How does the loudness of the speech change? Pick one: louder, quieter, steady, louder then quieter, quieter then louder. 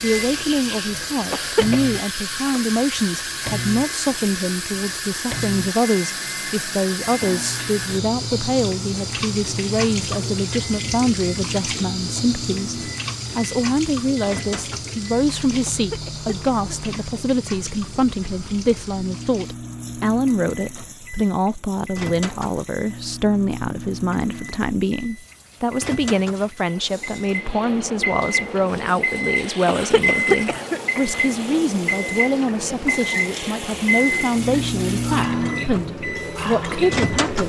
steady.